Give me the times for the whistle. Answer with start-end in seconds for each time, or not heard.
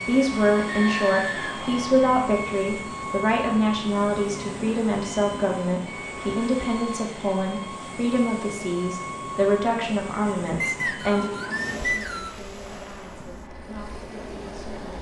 0.7-1.9, 10.6-12.4.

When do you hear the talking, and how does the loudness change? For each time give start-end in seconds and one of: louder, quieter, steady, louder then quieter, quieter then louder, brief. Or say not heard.
0.1-14.8 quieter.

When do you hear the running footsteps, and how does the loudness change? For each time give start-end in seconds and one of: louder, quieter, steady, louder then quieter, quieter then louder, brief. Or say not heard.
not heard.